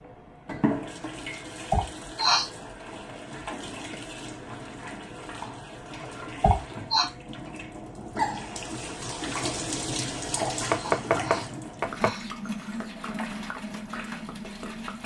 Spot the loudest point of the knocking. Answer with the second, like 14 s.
11 s.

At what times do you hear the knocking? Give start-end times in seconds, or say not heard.
3.5-4.0, 10.7-12.2.